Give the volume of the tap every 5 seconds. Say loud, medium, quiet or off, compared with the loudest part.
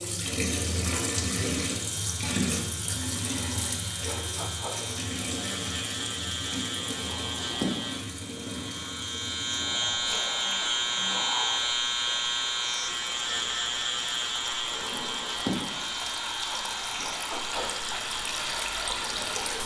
loud, medium, medium, loud.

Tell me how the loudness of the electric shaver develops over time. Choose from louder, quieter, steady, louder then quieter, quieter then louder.
louder then quieter.